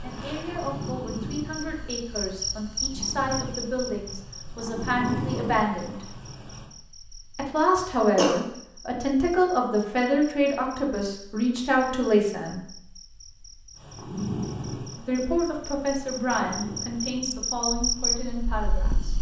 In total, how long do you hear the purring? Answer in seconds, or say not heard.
12 s.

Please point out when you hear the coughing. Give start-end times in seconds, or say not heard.
7.8-8.3.